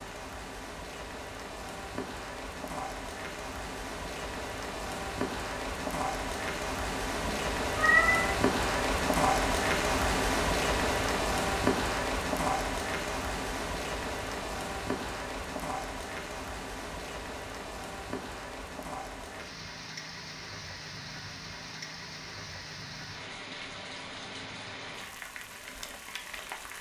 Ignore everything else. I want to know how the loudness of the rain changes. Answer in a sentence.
The volume of the rain goes up, then down.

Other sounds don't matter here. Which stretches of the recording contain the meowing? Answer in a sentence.
The meowing can be heard from 7.2 to 8.3 s.